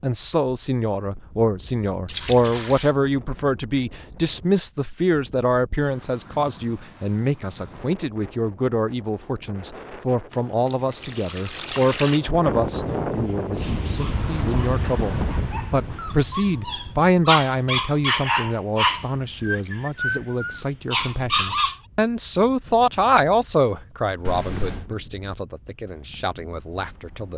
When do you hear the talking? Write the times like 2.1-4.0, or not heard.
0.0-27.3.